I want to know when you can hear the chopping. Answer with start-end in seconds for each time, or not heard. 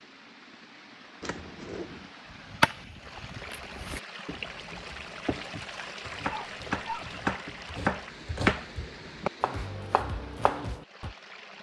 2.5-11.2.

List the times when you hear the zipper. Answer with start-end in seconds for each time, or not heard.
1.2-2.1.